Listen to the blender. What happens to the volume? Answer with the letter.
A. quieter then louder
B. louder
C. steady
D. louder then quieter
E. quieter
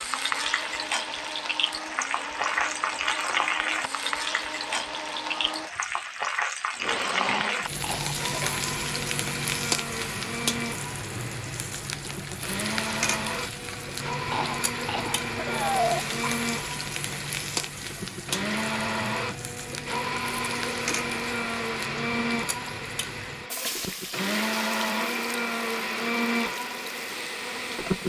B.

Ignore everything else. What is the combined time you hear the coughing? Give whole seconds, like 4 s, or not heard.
3 s.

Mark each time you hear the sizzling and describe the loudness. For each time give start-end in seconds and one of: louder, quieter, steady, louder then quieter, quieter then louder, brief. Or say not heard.
0.0-28.0 quieter.